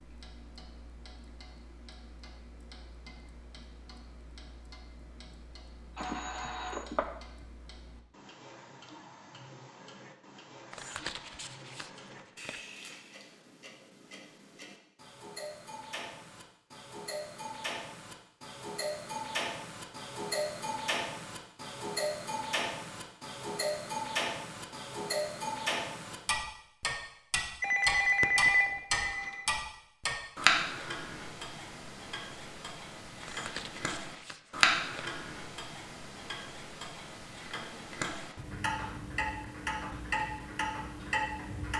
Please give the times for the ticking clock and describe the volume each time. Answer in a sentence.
You can hear the ticking clock from 0.0 to 41.7 s, getting louder.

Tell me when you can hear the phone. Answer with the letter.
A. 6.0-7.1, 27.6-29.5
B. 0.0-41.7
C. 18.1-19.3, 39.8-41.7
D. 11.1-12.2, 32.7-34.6
A.